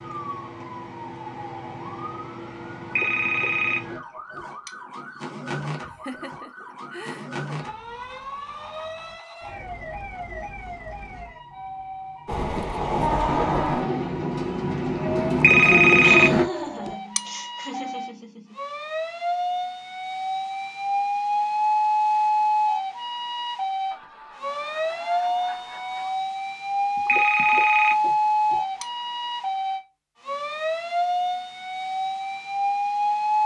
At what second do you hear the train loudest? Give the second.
16 s.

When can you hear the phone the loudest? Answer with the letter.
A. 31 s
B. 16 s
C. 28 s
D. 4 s
B.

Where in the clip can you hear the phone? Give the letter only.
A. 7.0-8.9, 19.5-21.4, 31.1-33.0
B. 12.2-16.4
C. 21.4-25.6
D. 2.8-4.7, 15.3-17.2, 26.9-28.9
D.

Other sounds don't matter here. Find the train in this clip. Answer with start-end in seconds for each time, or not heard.
12.2-16.4.